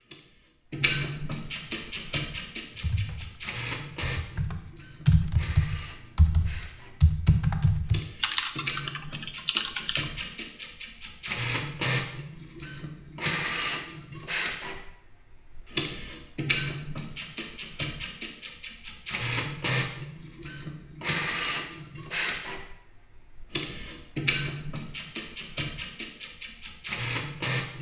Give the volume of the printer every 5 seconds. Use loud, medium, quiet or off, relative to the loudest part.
loud, medium, loud, loud, loud, loud.